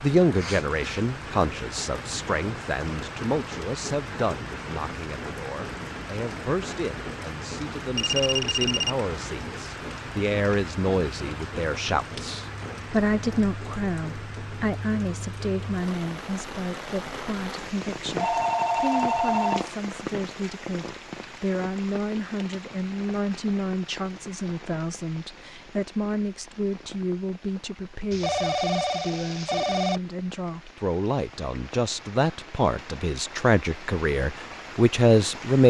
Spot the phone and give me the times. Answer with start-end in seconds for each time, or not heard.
8.0-8.9, 18.1-19.7, 28.1-30.0.